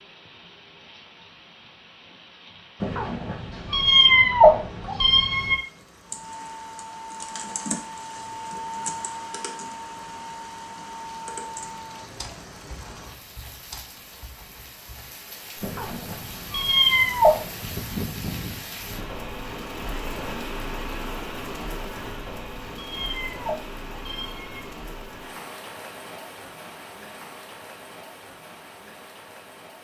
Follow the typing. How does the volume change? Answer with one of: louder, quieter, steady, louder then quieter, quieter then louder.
quieter.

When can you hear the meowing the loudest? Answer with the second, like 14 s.
4 s.